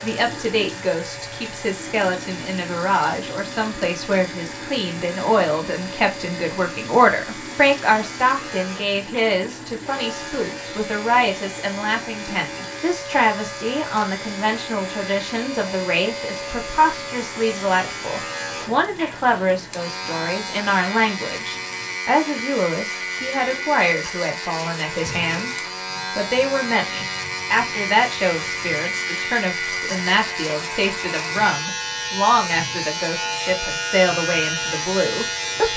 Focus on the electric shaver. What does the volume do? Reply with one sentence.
The loudness of the electric shaver goes up.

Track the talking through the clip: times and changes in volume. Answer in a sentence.
The talking can be heard from 0.0 to 35.7 s, at a steady volume.